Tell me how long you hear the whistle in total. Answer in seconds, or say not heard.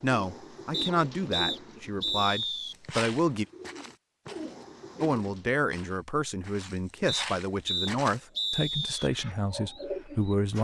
4 s.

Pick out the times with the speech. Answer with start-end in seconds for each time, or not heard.
0.0-3.5, 5.0-10.5.